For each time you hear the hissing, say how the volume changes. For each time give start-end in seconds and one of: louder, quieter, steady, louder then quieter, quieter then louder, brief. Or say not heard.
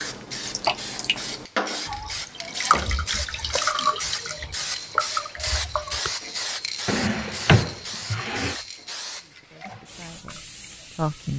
0.0-11.3 quieter.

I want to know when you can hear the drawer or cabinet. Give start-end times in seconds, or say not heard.
2.3-4.0, 6.8-8.6.